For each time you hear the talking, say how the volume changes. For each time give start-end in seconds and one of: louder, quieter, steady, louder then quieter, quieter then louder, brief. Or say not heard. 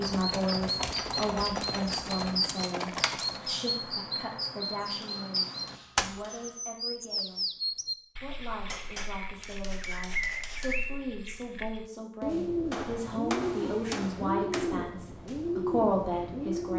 0.0-7.5 quieter
8.2-16.7 louder.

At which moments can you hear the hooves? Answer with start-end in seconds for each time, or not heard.
0.0-3.5.